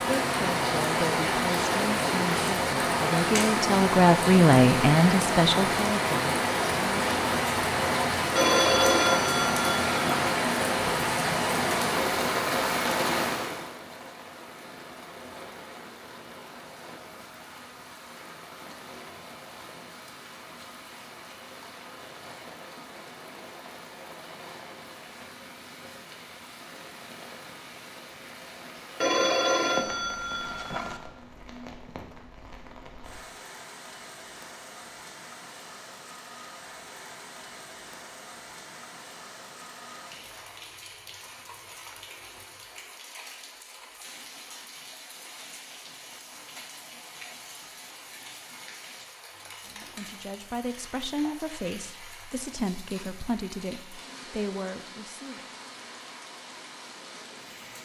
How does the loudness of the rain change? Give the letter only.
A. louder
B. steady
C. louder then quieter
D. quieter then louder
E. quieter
E.